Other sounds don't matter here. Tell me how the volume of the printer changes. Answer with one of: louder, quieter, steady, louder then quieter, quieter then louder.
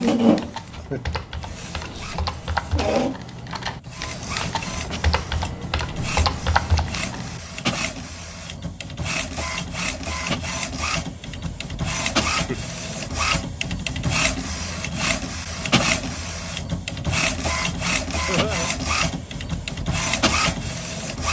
louder.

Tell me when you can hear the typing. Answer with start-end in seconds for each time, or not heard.
0.0-7.4.